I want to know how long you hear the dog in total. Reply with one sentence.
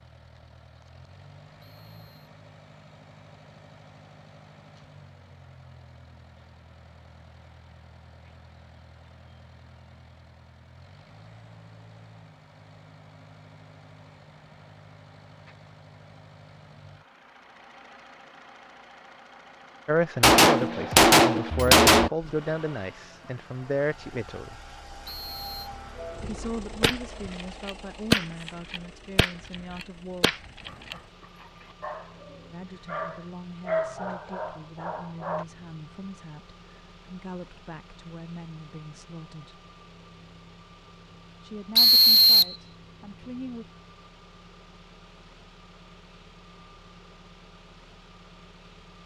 The dog can be heard for 5 seconds in total.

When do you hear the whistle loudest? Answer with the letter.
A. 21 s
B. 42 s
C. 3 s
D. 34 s
B.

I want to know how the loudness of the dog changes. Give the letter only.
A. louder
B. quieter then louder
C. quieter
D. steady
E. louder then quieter
E.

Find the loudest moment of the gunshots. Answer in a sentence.
The volume of the gunshots peaks at 21 seconds.